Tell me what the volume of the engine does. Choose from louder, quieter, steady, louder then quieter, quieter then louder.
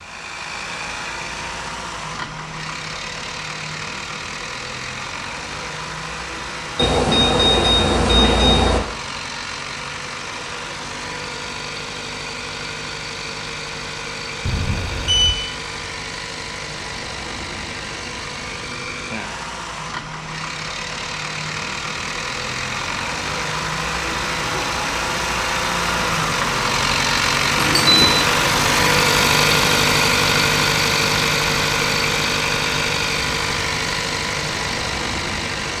louder.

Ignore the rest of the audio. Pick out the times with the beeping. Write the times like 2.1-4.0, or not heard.
6.8-8.8, 14.4-15.3, 27.6-28.2.